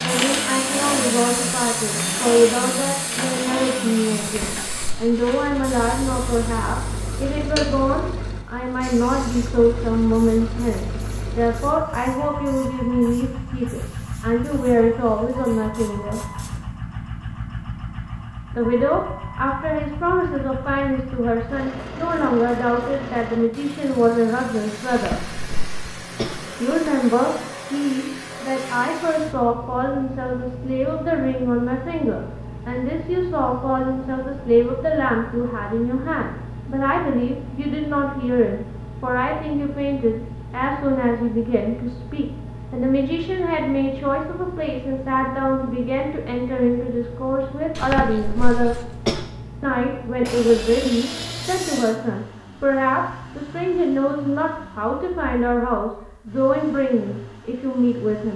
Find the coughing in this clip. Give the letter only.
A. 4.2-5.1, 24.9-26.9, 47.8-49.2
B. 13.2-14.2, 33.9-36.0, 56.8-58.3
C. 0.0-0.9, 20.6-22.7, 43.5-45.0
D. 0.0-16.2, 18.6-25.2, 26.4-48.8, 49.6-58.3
A.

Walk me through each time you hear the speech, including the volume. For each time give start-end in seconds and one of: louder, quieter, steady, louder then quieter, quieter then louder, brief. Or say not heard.
0.0-16.2 steady
18.6-25.2 steady
26.4-48.8 steady
49.6-58.3 steady.